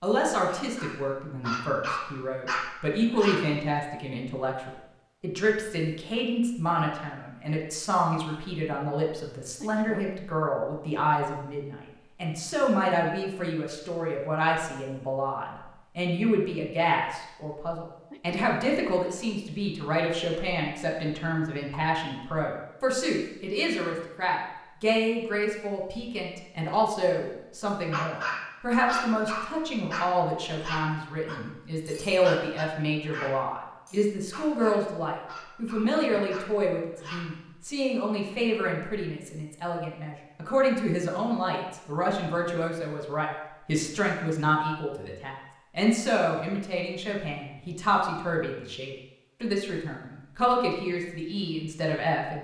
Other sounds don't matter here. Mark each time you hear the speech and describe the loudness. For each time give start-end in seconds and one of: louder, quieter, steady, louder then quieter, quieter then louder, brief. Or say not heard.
0.0-52.3 steady.